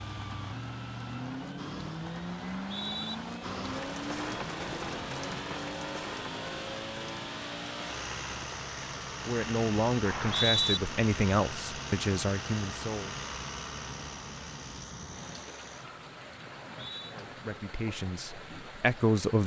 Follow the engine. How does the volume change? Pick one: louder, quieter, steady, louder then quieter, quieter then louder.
quieter.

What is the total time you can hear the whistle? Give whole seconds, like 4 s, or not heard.
2 s.